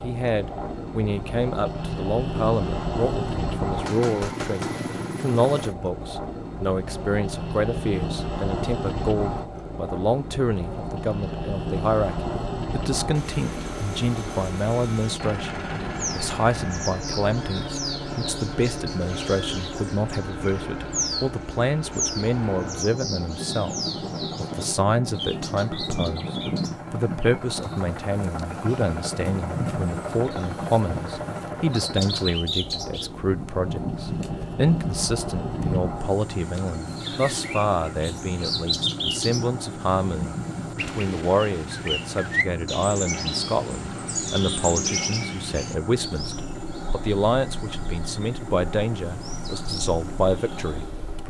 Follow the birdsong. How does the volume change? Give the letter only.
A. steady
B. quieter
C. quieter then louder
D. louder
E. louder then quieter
A.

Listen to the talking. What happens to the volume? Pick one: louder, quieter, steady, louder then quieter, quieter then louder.
steady.